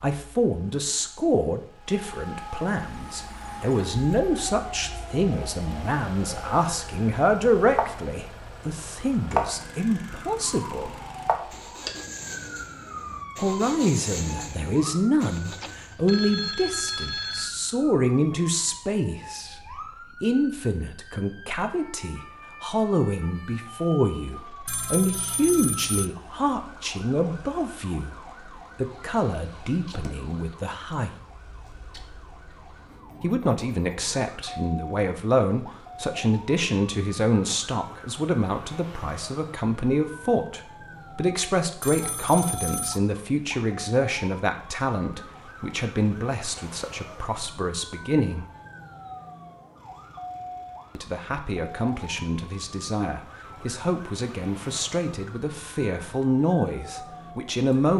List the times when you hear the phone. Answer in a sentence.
The phone can be heard from 15.3 to 17.6 s, from 24.6 to 26.1 s and from 41.8 to 43.0 s.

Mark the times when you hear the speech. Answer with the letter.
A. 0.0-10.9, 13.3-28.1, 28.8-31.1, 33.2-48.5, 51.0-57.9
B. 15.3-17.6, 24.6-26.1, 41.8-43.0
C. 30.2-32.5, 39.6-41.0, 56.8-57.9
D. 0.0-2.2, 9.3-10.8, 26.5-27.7
A.